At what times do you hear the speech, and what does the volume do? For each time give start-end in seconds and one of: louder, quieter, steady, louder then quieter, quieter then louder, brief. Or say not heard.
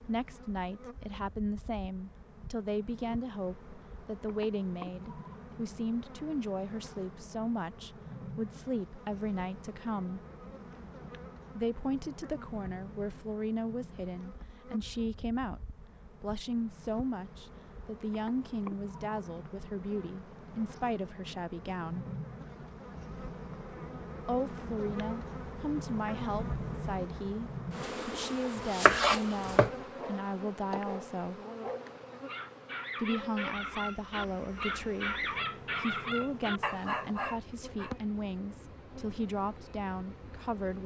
0.0-10.2 steady
11.6-22.1 steady
24.2-31.4 steady
33.0-40.8 steady.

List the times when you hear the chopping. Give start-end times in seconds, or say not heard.
28.1-29.7.